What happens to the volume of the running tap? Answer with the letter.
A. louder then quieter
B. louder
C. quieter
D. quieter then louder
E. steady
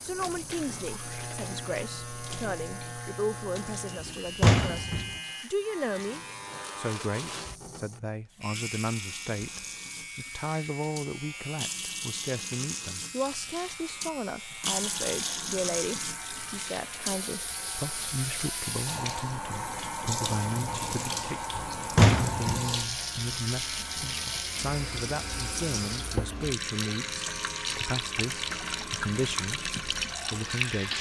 B.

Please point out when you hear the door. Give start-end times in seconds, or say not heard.
4.0-5.1, 21.6-22.6.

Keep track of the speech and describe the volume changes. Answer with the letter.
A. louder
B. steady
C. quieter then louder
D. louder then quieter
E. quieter
B.